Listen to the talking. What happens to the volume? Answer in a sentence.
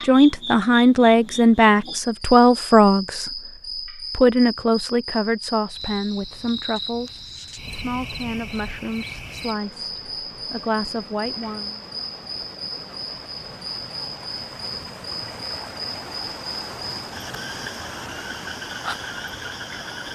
The loudness of the talking goes down.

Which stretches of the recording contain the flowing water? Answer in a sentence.
You can hear the flowing water from 7.4 to 20.1 s.